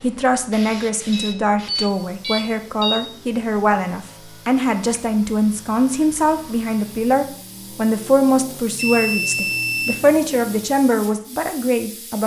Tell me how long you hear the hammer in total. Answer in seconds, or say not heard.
not heard.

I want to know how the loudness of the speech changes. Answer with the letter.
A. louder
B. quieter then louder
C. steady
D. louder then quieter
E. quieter
C.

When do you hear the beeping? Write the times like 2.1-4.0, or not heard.
1.1-3.0, 8.8-9.9.